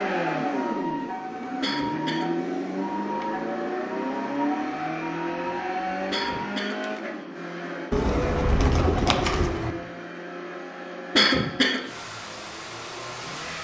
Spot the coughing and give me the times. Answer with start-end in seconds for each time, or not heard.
1.6-2.3, 6.1-6.8, 11.1-11.8.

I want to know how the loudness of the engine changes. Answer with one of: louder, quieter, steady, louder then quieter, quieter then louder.
quieter.